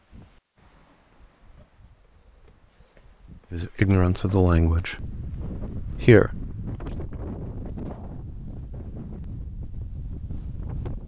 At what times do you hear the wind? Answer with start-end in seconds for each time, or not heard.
0.0-11.0.